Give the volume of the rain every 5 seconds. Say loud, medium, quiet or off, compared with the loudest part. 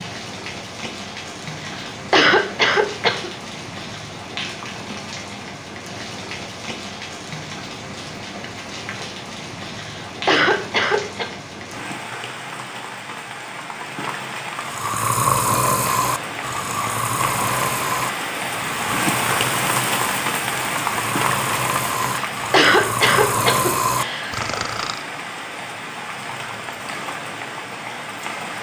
medium, medium, medium, loud, loud, medium.